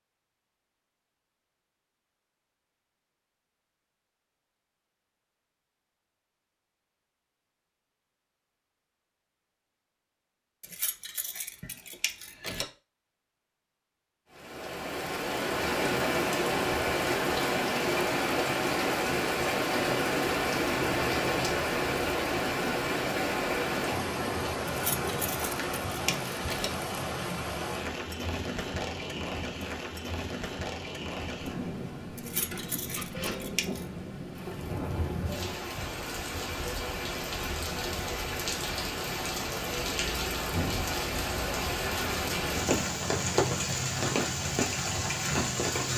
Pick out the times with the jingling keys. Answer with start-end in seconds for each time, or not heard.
10.6-12.7, 24.6-26.7, 32.1-33.9.